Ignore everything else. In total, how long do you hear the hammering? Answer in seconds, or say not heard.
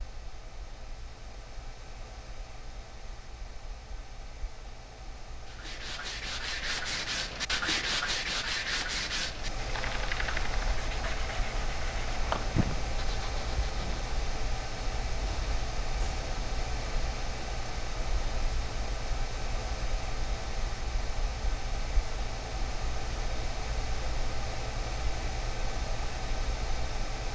not heard.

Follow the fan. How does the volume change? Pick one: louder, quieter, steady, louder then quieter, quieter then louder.
louder.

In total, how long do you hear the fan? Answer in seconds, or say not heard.
27 s.